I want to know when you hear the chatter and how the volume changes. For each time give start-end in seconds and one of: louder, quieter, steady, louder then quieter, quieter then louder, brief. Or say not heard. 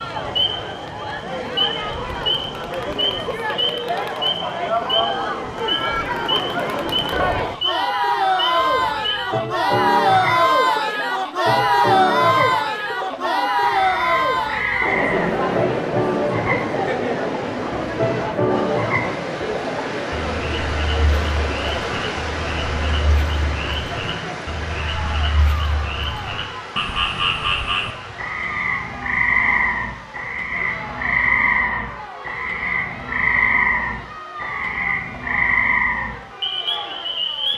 0.0-37.5 louder then quieter.